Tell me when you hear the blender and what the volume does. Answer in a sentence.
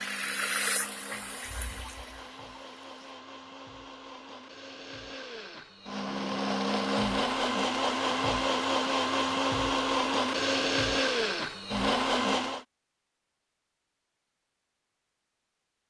You can hear the blender from 0.0 to 12.7 s, getting louder.